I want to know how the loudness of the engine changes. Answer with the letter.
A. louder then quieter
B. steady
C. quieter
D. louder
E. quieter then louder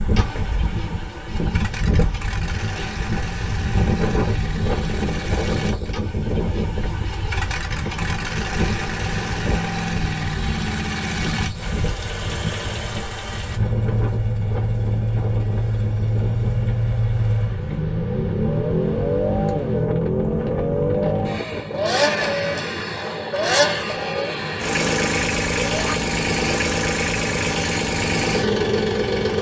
D.